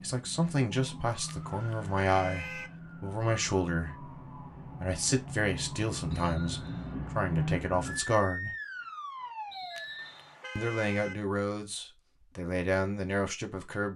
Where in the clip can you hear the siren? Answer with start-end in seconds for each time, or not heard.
0.0-10.2.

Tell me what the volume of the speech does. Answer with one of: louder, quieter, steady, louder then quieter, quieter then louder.
steady.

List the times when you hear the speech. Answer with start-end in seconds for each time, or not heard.
0.0-8.5, 10.6-13.9.